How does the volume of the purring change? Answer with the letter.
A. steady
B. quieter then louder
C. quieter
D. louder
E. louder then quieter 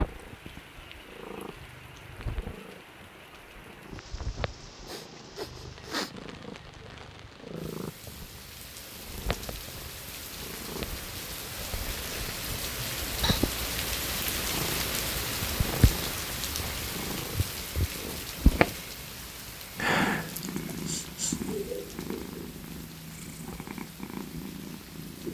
D.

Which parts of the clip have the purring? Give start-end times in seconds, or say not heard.
0.0-25.2.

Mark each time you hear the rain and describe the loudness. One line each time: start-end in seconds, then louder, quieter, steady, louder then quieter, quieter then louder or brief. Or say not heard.
0.0-25.2 louder then quieter.